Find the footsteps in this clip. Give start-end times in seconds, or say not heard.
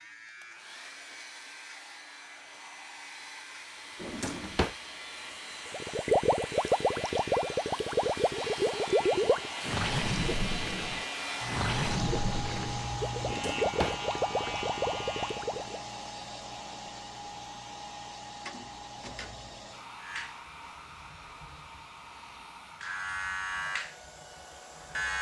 not heard.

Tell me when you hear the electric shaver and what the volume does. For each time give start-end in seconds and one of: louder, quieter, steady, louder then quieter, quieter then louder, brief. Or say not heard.
0.0-15.5 louder
20.0-25.1 louder then quieter.